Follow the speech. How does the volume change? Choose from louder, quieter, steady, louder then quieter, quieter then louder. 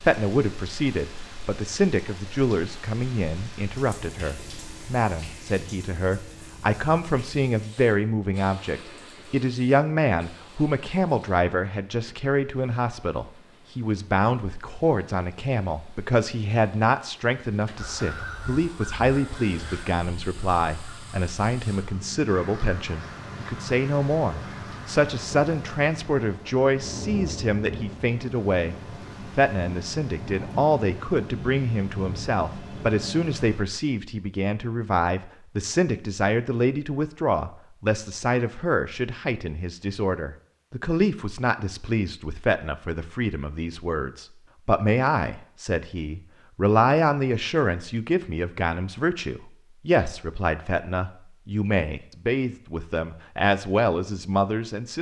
steady.